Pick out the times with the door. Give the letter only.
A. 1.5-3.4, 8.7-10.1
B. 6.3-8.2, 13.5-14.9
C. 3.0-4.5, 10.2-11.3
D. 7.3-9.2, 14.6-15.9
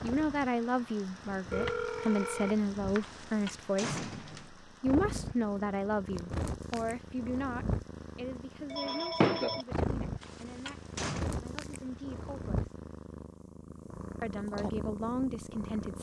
C.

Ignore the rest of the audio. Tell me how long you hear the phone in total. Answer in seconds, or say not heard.
3 s.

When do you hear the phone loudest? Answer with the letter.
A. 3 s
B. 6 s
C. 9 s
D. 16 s
C.